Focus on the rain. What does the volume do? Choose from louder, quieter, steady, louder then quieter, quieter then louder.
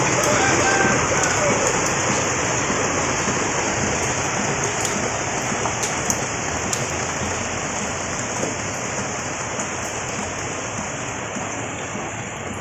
quieter.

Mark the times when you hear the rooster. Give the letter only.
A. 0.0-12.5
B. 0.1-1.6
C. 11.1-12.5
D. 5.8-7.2
B.